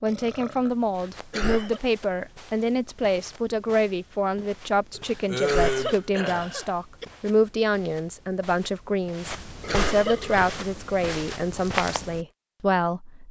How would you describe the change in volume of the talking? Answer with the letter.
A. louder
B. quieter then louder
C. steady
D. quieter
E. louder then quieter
C.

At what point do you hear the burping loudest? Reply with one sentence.
The volume of the burping peaks at 6 seconds.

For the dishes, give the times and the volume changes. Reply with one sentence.
The dishes can't be heard in this clip.